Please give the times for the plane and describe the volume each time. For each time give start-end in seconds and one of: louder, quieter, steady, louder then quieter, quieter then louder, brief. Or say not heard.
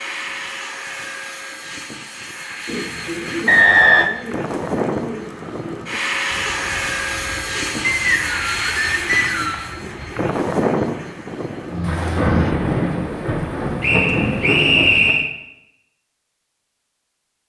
0.0-12.6 louder.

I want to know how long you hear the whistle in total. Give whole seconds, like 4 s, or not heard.
4 s.